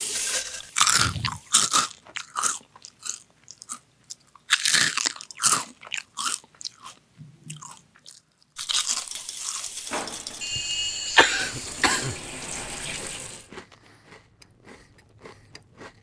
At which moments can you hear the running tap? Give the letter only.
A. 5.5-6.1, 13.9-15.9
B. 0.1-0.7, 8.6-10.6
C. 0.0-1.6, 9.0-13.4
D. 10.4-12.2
C.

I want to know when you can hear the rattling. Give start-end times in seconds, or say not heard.
0.1-0.7, 8.6-10.6.